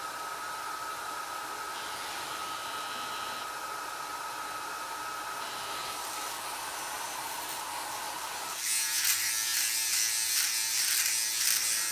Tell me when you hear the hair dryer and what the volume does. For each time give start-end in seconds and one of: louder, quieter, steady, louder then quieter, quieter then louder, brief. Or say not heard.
0.0-11.6 quieter.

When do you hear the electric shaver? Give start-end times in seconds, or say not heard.
1.7-3.5, 5.3-11.8.